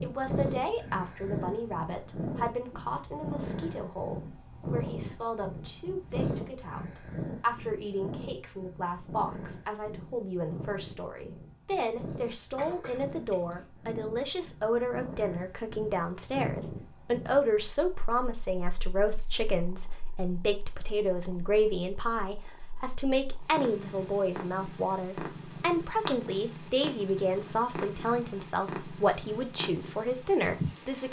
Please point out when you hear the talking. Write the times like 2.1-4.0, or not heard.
0.0-31.0.